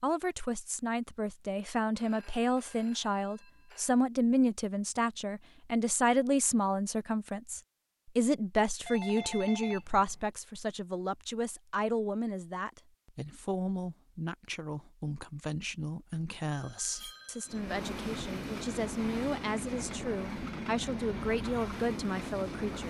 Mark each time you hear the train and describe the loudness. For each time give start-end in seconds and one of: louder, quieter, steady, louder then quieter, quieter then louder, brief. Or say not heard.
17.4-22.8 steady.